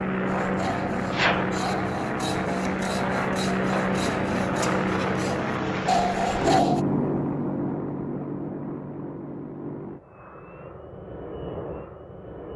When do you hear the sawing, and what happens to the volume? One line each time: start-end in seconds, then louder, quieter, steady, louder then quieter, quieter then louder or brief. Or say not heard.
0.2-6.8 louder.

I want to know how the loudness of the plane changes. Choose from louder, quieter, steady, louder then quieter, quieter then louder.
quieter.